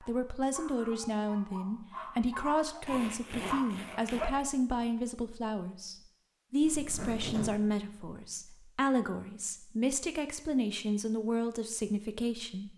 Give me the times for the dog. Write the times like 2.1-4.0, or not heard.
0.0-4.3.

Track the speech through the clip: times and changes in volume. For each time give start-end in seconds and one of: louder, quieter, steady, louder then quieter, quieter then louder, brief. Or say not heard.
0.0-12.7 steady.